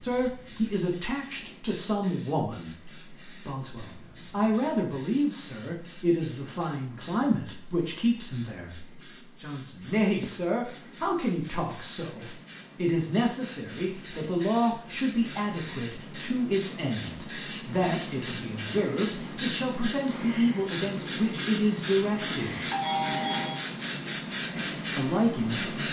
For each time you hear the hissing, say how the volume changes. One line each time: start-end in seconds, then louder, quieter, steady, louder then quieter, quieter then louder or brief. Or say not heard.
0.0-25.8 louder.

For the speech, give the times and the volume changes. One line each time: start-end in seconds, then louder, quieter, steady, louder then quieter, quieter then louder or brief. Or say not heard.
0.0-22.6 steady
24.9-25.7 brief.